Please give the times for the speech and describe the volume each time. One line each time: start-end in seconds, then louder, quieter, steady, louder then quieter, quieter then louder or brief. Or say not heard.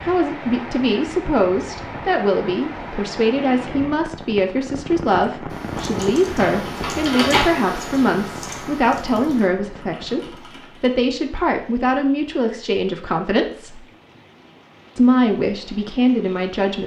0.0-13.8 steady
14.9-16.8 brief.